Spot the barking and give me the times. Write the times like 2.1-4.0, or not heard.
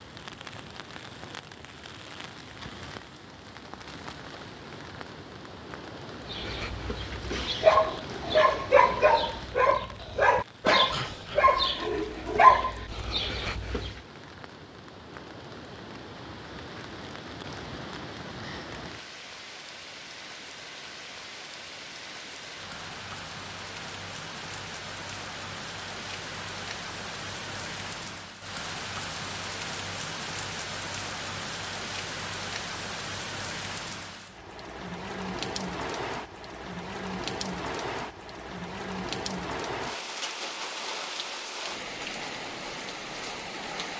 6.2-14.0.